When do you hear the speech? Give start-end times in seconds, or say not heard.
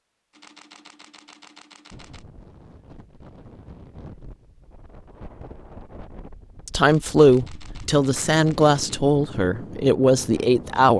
6.7-10.9.